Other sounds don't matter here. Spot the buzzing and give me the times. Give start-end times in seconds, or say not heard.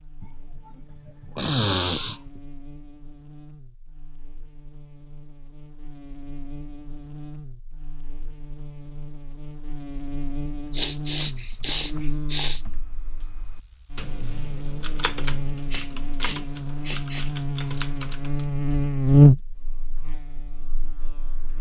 0.0-21.5.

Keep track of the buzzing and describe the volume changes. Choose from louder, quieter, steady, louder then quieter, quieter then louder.
louder.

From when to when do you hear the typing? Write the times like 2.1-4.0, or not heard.
11.2-18.4.